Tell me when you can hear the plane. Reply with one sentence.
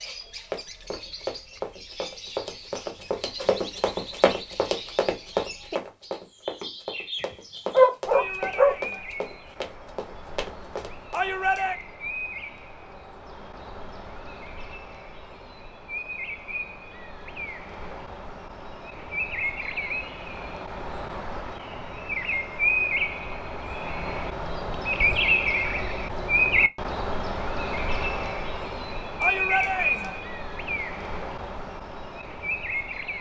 The plane can't be heard in this clip.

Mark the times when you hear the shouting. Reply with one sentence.
The shouting can be heard from 8.1 to 9.1 s, from 11.1 to 11.8 s and from 29.2 to 30.2 s.